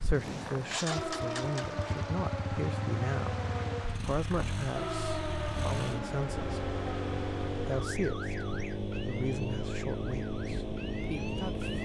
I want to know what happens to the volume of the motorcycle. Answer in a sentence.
The volume of the motorcycle stays about the same.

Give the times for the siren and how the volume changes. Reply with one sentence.
You can hear the siren from 0.0 to 11.7 s, getting quieter.